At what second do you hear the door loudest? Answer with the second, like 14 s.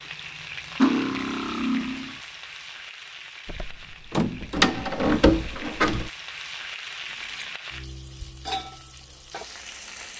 5 s.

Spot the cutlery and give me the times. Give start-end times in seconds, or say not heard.
0.8-2.1, 7.0-7.5.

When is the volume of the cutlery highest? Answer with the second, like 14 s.
1 s.